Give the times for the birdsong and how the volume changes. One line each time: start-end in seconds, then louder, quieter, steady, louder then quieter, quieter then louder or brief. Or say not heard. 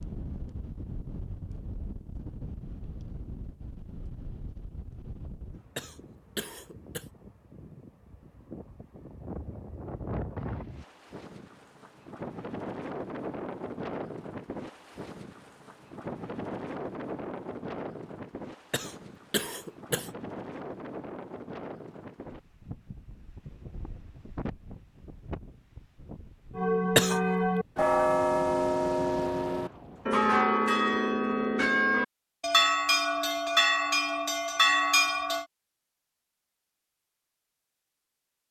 not heard.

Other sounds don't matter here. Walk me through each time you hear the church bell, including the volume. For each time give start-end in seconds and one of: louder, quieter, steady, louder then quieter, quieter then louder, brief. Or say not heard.
26.6-35.5 steady.